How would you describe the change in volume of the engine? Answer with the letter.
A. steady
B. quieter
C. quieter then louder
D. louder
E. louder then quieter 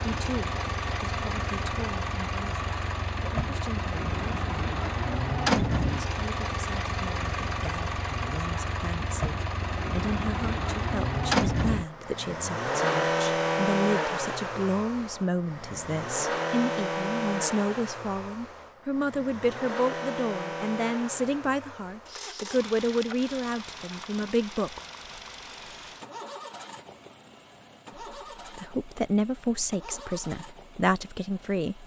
B.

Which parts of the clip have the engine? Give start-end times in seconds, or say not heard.
0.0-31.8.